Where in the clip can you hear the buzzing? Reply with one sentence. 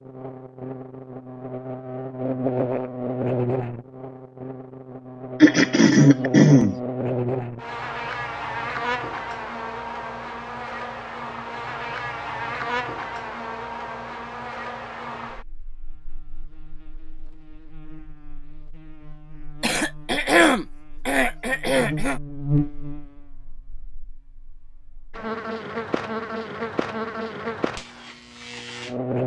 You can hear the buzzing from 0.0 to 29.2 s.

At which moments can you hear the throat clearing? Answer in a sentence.
The throat clearing can be heard from 5.4 to 6.8 s and from 19.6 to 22.2 s.